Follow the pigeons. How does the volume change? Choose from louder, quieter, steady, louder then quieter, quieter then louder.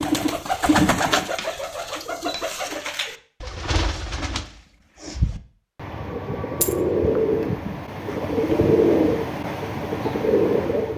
quieter then louder.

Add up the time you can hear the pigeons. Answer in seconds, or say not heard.
11 s.